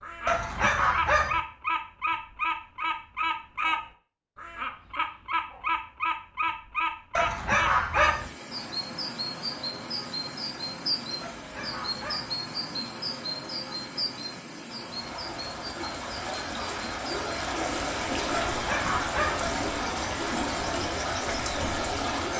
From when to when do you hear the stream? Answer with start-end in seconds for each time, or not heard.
7.7-22.3.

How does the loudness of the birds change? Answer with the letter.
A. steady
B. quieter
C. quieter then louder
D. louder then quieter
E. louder
B.